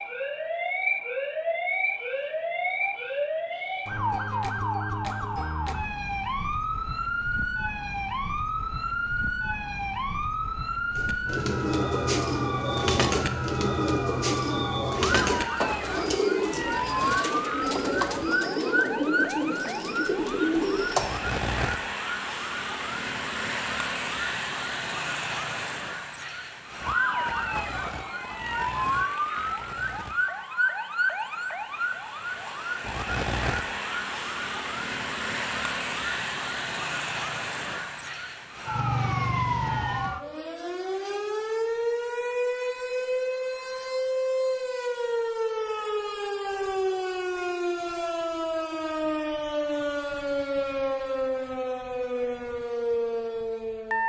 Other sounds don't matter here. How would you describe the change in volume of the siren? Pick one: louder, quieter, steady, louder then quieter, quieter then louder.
steady.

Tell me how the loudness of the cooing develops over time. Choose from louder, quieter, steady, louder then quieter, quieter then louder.
steady.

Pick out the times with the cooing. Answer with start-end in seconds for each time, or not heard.
10.9-21.3.